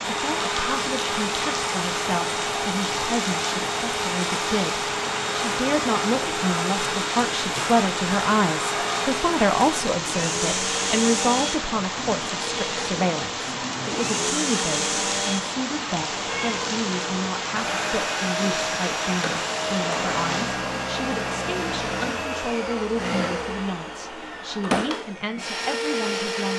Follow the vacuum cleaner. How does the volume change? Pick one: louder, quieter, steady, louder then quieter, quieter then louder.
steady.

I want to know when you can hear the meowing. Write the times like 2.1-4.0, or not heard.
16.3-16.8.